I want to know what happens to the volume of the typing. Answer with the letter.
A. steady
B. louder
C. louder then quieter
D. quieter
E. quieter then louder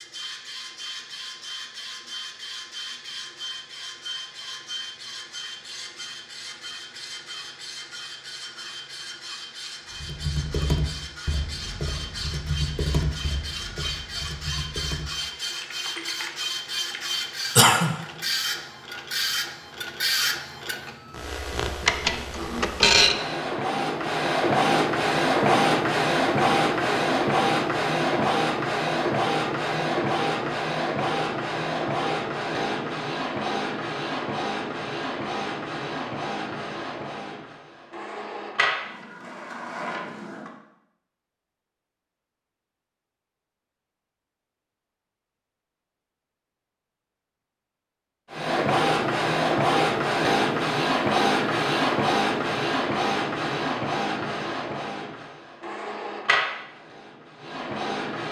D.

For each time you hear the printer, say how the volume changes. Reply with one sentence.
The printer can be heard from 0.0 to 40.5 s, getting louder then quieter; and from 48.3 to 58.2 s, getting quieter.